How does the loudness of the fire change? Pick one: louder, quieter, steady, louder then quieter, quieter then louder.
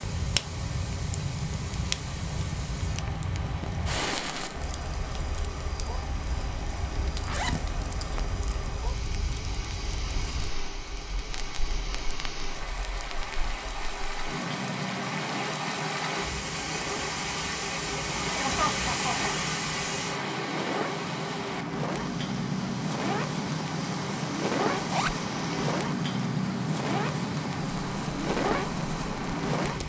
quieter then louder.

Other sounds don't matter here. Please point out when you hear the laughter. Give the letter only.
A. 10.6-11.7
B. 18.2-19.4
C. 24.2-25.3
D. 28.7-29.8
B.